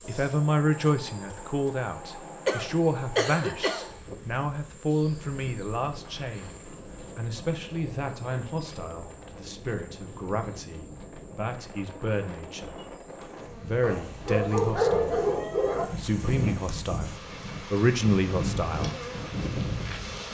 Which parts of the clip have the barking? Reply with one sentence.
You can hear the barking from 13.8 to 15.8 s.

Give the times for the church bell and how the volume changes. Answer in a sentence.
You can't hear the church bell here.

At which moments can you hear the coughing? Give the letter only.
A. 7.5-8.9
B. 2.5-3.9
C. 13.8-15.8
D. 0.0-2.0
B.